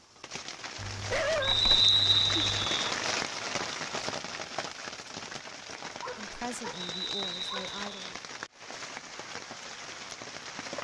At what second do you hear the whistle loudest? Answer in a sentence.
The volume of the whistle peaks at 2 seconds.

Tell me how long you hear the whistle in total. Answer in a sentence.
You can hear the whistle for 3 seconds altogether.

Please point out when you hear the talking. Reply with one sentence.
The talking can be heard from 6.2 to 8.2 s.